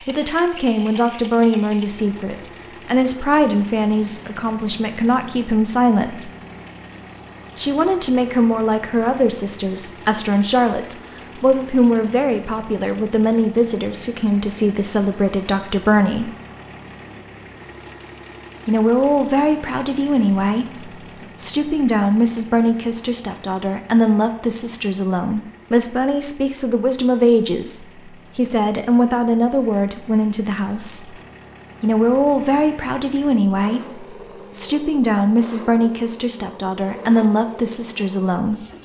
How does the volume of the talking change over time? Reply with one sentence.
The loudness of the talking stays about the same.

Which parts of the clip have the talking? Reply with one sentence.
You can hear the talking from 0.1 to 6.3 s, from 7.5 to 16.3 s, from 18.6 to 31.1 s and from 31.8 to 38.6 s.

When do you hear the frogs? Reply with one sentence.
The frogs can't be heard in this clip.